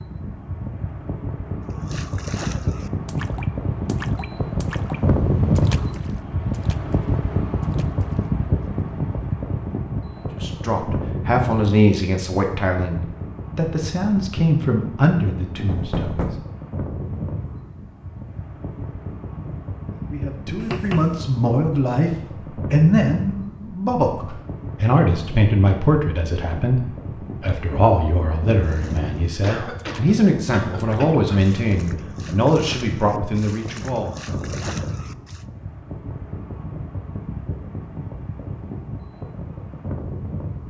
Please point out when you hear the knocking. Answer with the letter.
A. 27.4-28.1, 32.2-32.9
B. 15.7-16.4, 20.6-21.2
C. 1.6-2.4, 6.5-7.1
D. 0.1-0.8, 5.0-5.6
B.